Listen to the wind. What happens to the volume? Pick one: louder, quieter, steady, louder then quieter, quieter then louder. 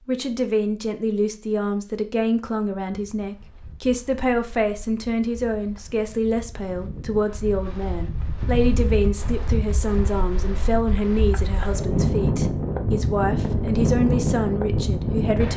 louder.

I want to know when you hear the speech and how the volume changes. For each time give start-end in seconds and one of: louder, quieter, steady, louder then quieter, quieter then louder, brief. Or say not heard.
0.1-15.5 steady.